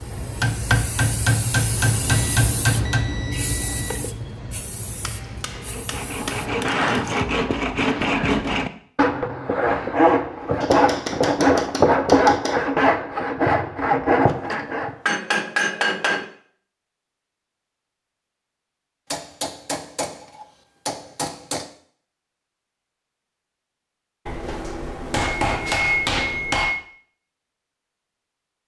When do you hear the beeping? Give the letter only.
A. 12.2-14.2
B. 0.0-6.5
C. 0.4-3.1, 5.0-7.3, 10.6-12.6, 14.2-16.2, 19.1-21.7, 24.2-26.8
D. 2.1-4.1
D.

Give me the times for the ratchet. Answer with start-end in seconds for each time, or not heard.
not heard.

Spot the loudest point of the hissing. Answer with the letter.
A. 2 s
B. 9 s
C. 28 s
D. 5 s
A.